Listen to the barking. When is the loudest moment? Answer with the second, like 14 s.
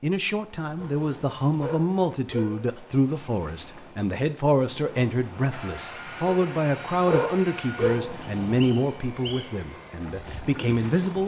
7 s.